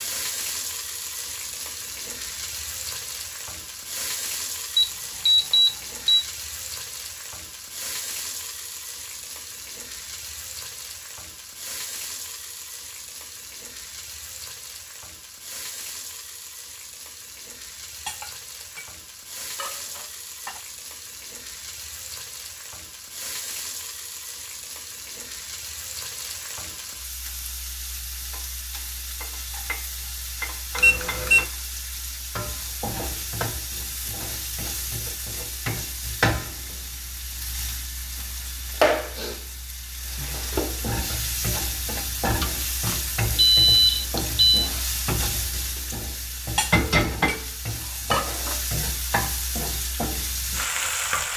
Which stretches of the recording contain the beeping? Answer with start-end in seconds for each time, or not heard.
4.8-6.2, 30.8-31.4, 42.4-44.7.